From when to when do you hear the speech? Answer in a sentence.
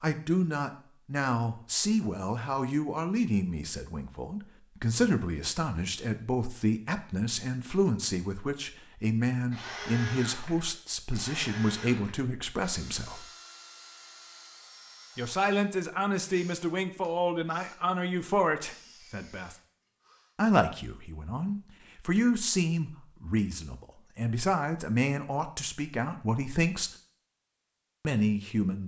The speech can be heard from 0.0 to 13.2 s, from 15.2 to 19.6 s, from 20.4 to 26.9 s and from 28.1 to 28.8 s.